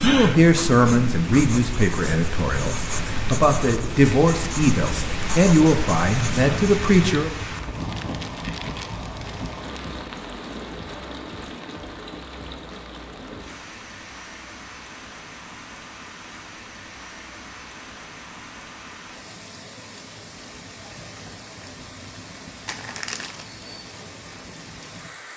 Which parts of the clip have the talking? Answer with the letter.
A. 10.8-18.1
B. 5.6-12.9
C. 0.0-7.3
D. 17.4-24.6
C.